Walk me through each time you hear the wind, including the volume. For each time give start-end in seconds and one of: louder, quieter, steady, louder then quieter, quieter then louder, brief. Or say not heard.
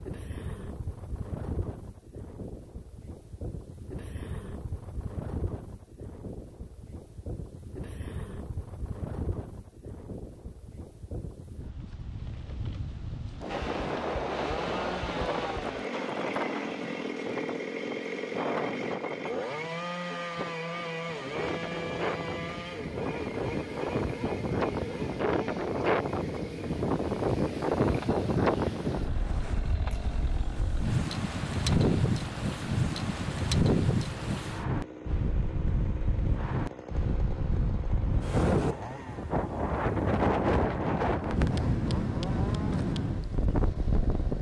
0.0-44.3 louder.